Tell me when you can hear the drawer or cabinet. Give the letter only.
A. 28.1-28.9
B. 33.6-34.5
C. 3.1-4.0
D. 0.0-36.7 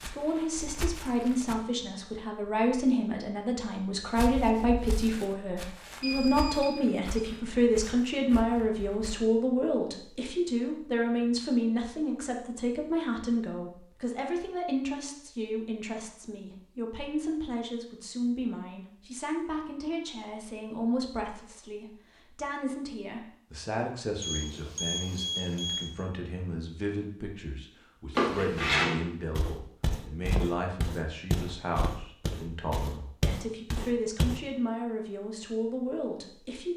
A.